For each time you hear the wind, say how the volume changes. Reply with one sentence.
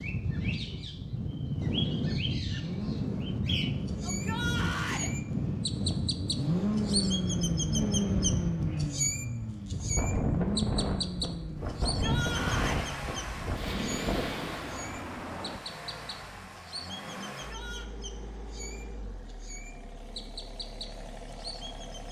The wind can be heard from 0.0 to 14.8 s, at a steady volume.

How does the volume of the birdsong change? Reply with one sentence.
The volume of the birdsong goes up, then down.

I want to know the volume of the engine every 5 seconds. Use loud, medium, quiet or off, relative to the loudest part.
medium, loud, medium, quiet, quiet.